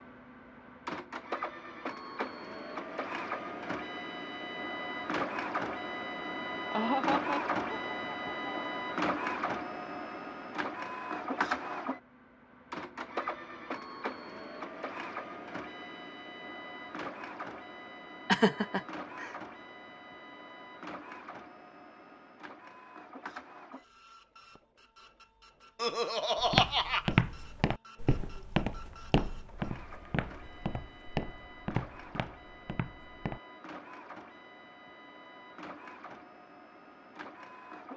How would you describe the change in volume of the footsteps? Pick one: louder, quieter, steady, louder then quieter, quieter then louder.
quieter.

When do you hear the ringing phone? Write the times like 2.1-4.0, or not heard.
not heard.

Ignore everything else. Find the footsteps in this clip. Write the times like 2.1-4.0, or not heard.
26.4-33.4.